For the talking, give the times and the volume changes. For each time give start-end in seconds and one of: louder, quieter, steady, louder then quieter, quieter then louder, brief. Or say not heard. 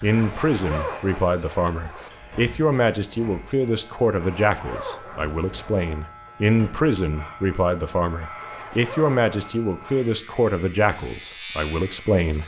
0.0-12.4 steady.